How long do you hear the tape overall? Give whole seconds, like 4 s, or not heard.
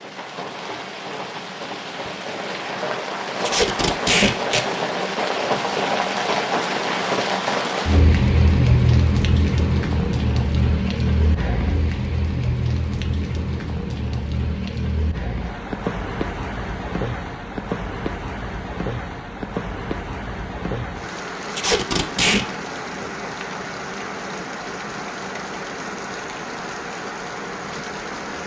2 s.